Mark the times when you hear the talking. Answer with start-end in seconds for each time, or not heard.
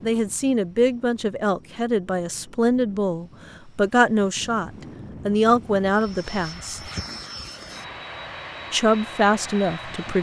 0.0-6.8, 8.7-10.1.